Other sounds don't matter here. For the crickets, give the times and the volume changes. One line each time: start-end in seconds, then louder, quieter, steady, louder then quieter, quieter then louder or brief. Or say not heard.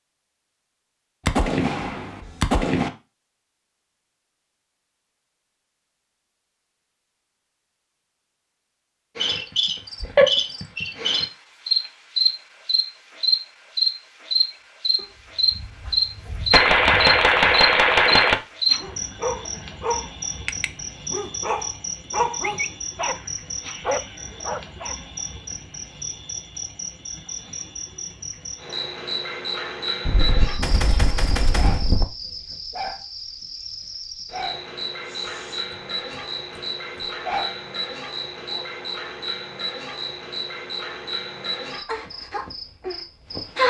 9.2-43.6 quieter.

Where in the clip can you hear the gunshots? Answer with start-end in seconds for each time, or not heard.
1.2-2.9, 16.5-18.4, 30.1-32.0.